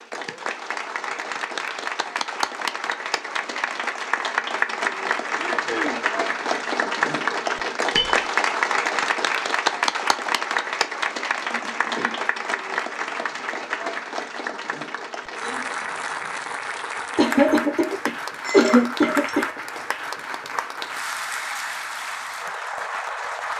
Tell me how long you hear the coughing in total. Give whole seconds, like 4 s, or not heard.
4 s.